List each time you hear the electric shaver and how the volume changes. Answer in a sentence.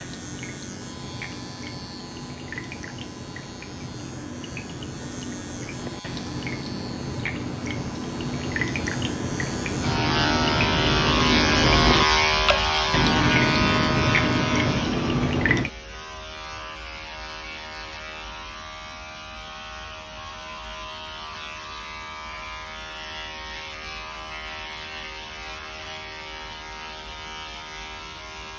The electric shaver can be heard from 0.0 to 28.5 s, getting louder then quieter.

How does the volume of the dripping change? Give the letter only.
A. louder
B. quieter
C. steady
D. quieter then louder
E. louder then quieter
A.